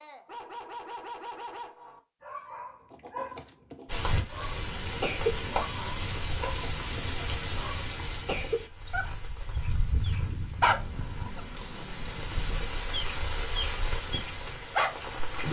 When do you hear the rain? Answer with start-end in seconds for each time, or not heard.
3.9-15.4.